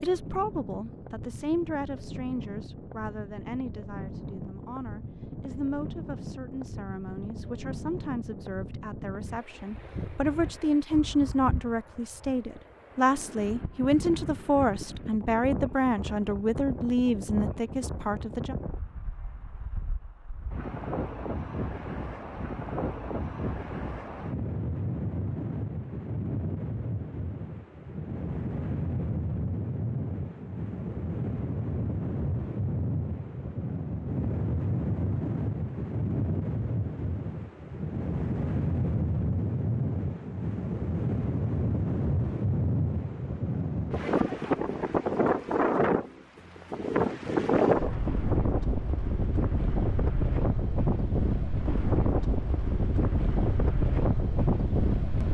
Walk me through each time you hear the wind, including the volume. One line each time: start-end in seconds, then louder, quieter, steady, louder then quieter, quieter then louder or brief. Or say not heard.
0.0-55.2 louder.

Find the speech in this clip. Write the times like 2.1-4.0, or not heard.
0.0-18.6.